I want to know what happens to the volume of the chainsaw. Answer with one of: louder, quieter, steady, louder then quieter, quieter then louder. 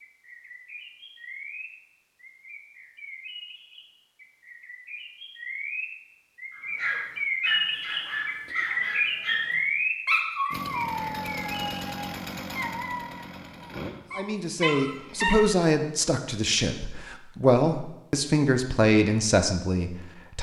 quieter.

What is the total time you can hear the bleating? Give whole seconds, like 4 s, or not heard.
not heard.